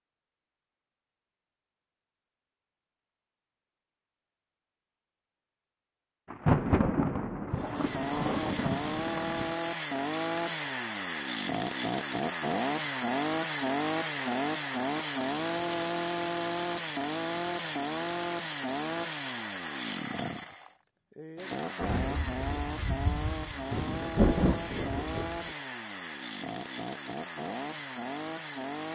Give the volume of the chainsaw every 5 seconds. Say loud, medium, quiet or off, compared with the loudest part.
off, loud, loud, loud, medium, medium.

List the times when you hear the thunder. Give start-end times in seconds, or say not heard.
6.3-9.6, 21.8-25.6.